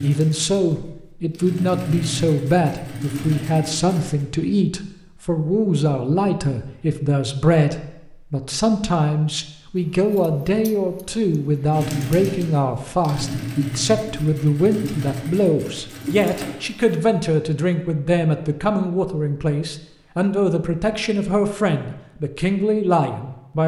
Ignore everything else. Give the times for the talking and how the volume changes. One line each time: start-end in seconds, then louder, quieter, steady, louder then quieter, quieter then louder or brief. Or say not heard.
0.0-23.6 steady.